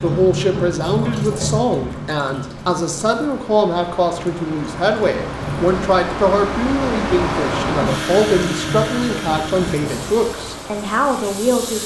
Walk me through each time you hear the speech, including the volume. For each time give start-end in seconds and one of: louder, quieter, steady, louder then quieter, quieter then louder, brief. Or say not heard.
0.0-11.8 steady.